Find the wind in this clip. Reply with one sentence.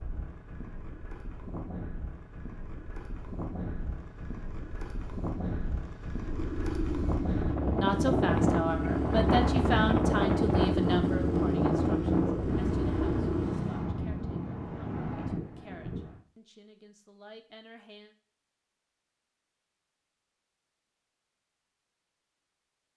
The wind can be heard from 0.0 to 16.2 s.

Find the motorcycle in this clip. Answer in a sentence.
The motorcycle can be heard from 6.2 to 13.8 s.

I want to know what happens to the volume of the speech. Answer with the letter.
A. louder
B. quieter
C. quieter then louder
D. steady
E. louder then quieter
B.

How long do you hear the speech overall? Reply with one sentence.
The speech can be heard for 10 seconds in total.